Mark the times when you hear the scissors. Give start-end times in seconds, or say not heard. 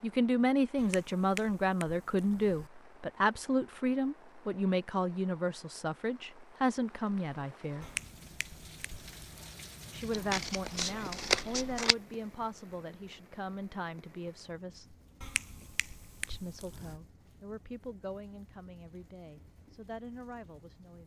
10.1-11.9.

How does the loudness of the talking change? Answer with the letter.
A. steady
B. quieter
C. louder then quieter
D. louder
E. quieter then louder
B.